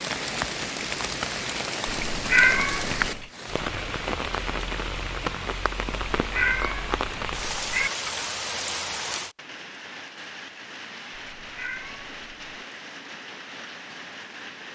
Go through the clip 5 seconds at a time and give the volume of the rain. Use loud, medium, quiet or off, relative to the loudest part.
loud, loud, medium.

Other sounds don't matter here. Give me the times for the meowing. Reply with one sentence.
You can hear the meowing from 1.9 to 3.2 s, from 5.9 to 7.9 s and from 11.1 to 12.7 s.